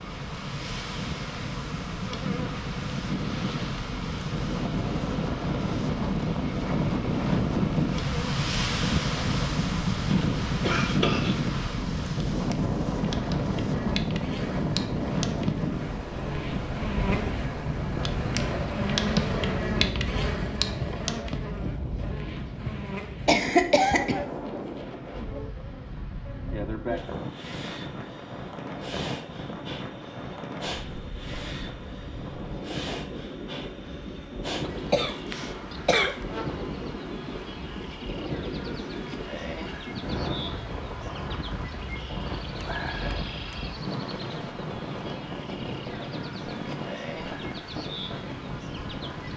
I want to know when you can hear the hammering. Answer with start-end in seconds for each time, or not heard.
not heard.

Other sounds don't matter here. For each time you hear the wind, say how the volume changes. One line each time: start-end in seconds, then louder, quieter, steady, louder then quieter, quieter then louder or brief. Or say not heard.
0.0-49.3 quieter.